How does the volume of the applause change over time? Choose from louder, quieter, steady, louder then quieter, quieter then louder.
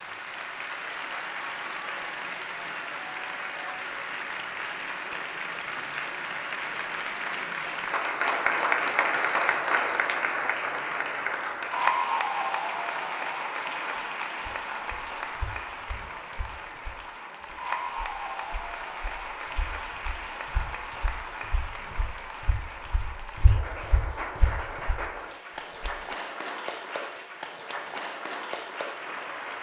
louder then quieter.